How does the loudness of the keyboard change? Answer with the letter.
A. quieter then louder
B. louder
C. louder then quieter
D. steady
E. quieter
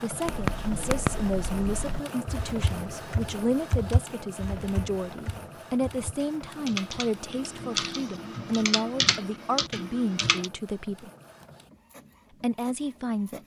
A.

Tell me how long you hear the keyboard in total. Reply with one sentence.
You can hear the keyboard for 10 seconds altogether.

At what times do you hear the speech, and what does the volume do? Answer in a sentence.
You can hear the speech from 0.0 to 11.1 s, at a steady volume; and briefly from 12.4 to 13.4 s.